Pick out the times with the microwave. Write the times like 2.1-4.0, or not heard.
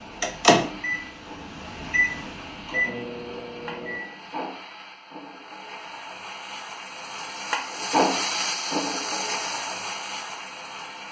0.2-4.3.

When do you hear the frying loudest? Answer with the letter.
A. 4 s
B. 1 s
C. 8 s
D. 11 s
C.